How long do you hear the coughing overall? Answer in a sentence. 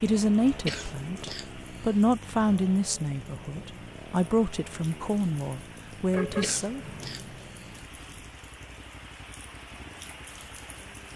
You can hear the coughing for 3 seconds altogether.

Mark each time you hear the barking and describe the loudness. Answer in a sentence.
You can't hear the barking here.